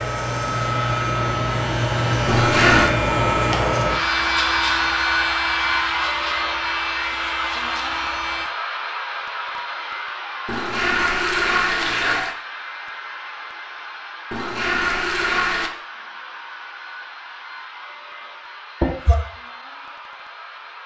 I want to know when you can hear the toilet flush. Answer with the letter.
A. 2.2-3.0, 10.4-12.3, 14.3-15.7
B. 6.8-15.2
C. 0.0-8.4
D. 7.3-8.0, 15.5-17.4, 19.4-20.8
A.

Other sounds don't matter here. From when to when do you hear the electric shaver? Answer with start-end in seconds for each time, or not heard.
0.0-8.4.